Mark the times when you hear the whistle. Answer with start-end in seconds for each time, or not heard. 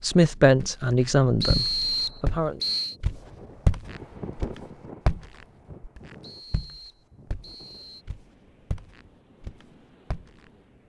1.4-3.0, 6.2-8.1.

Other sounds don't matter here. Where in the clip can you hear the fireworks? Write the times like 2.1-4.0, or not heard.
not heard.